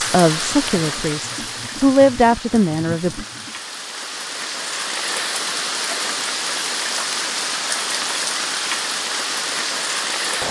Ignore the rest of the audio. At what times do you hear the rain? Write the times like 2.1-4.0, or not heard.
0.0-10.4.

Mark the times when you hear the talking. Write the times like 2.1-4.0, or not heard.
0.0-3.2.